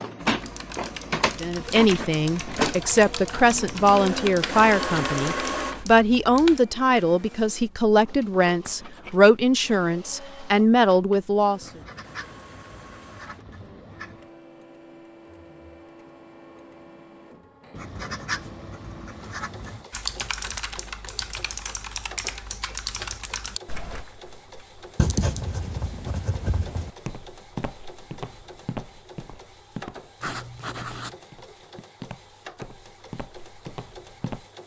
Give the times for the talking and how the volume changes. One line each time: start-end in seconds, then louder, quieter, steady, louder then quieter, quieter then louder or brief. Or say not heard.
1.4-11.7 steady.